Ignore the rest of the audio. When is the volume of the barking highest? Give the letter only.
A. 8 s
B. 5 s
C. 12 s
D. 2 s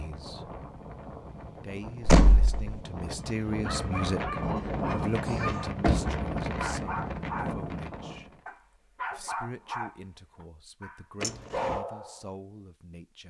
C.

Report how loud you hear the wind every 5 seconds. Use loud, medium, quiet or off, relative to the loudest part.
loud, loud, off.